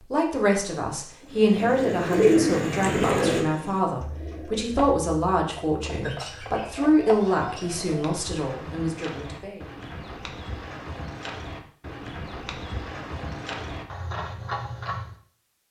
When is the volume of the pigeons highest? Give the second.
2 s.